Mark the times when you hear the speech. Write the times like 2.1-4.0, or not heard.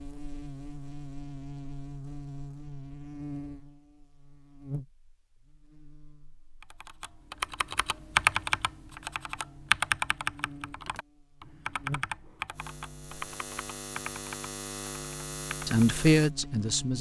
15.7-16.9.